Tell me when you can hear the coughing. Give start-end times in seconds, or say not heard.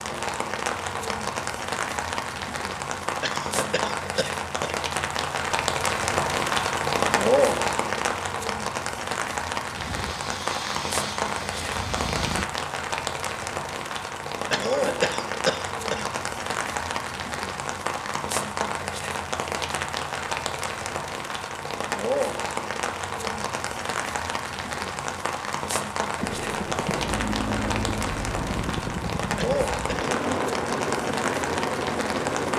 3.2-4.8, 14.5-16.1, 29.4-30.1.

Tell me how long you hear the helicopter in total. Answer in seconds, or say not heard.
9 s.